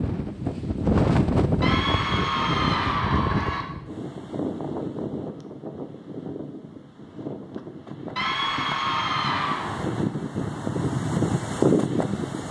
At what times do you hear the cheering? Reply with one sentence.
The cheering can be heard from 1.6 to 3.6 s and from 8.2 to 9.8 s.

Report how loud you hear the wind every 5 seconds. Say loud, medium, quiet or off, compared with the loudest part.
loud, medium, loud.